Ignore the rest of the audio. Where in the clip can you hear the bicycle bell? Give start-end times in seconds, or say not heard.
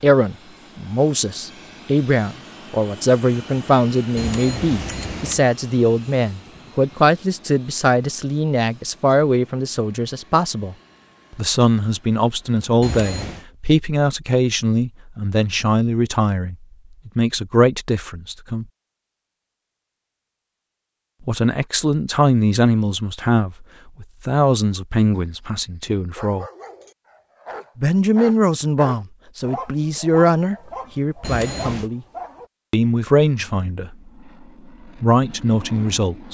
4.2-5.4, 12.8-13.4, 31.2-31.9.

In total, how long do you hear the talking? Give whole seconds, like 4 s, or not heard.
30 s.